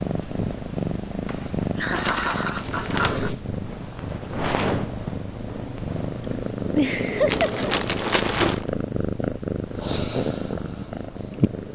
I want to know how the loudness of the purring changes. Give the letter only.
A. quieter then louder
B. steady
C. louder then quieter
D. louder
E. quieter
B.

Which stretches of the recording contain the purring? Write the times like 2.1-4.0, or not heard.
0.0-11.7.